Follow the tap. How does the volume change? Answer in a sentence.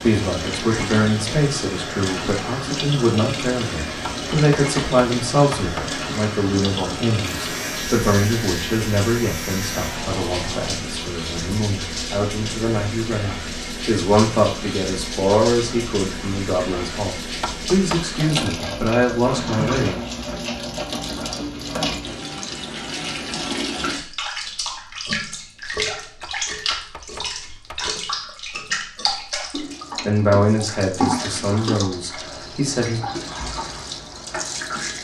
The loudness of the tap stays about the same.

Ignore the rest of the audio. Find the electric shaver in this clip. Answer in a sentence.
The electric shaver can be heard from 7.2 to 10.8 s.